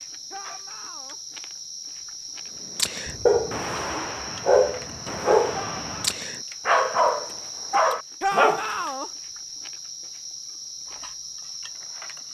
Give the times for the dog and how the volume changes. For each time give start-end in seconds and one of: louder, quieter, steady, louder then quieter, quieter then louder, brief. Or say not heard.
2.8-8.9 steady.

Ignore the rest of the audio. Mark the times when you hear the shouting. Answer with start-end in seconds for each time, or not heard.
0.3-1.2, 5.5-6.2, 8.2-9.1.